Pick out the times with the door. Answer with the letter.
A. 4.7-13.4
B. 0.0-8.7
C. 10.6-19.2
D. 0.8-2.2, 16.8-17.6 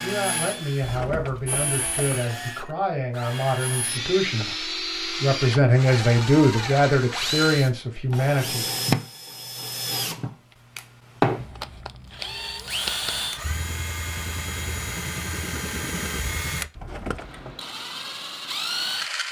D.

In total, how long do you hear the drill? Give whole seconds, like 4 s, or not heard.
19 s.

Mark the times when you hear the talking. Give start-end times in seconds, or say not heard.
0.0-8.7.